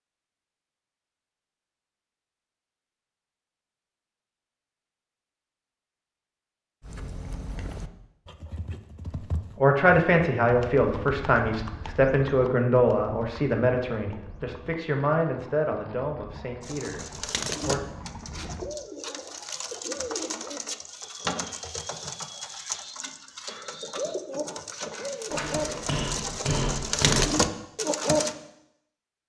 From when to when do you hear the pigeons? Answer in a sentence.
You can hear the pigeons from 16.6 to 28.4 s.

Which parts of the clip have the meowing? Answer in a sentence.
You can't hear the meowing here.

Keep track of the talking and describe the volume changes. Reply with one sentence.
The volume of the talking goes down.